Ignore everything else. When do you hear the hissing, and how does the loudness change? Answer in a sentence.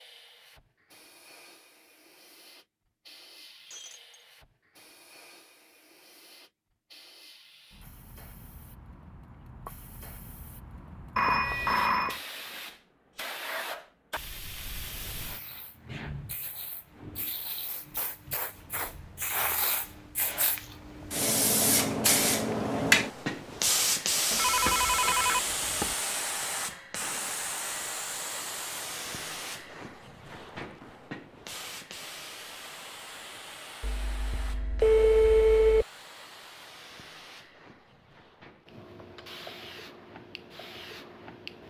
The hissing can be heard from 0.0 to 41.6 s, getting louder then quieter.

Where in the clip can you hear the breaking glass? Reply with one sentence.
You can hear the breaking glass from 3.6 to 4.2 s.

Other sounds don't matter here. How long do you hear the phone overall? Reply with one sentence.
You can hear the phone for 5 seconds altogether.